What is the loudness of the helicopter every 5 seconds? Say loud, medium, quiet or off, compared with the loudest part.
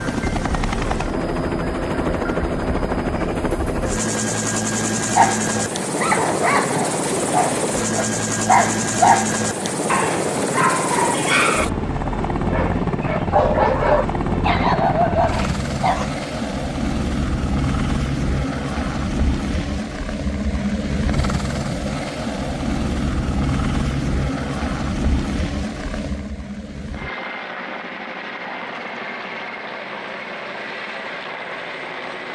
loud, loud, loud, loud, loud, medium, medium.